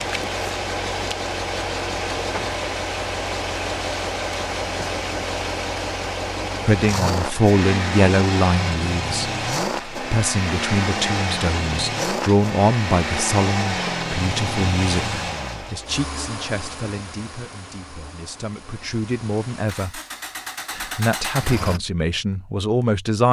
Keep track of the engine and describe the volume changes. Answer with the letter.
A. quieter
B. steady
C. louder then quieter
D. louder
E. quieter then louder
A.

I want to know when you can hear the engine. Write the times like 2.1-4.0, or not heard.
0.0-21.8.